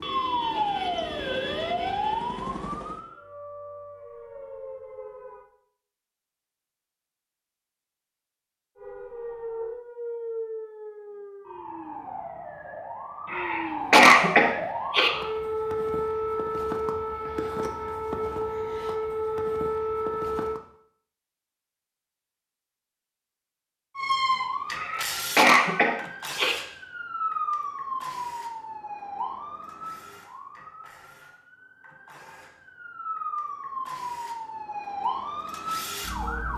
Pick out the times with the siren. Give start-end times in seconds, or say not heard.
0.0-5.5, 8.8-20.6, 23.9-36.5.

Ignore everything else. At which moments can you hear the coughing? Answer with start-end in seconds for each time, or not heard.
13.3-15.1, 24.8-26.6.